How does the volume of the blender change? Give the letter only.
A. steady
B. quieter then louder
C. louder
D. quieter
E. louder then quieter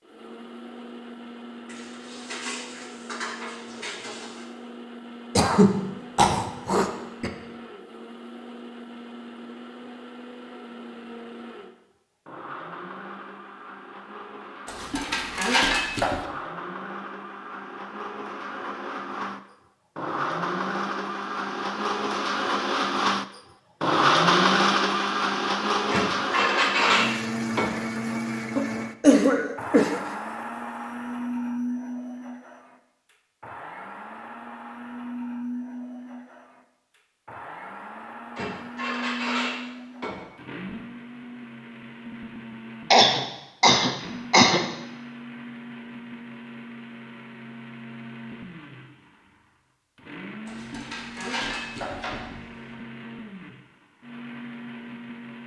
E.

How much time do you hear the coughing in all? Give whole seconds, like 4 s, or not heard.
5 s.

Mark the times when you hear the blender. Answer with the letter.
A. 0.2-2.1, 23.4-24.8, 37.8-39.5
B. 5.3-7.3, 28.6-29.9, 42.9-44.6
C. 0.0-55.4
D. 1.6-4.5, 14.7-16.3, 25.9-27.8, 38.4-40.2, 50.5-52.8
C.